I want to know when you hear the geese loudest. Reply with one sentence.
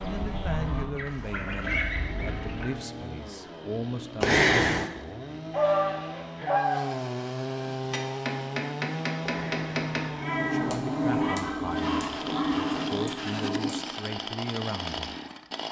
The volume of the geese peaks at 6 seconds.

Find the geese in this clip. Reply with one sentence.
You can hear the geese from 0.0 to 2.6 s, from 5.5 to 6.8 s and from 11.1 to 12.8 s.